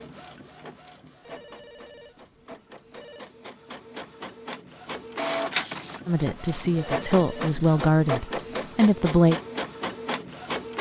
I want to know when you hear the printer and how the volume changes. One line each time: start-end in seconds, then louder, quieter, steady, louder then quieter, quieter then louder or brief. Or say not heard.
0.0-10.7 louder.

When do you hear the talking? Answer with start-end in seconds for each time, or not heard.
6.0-9.3.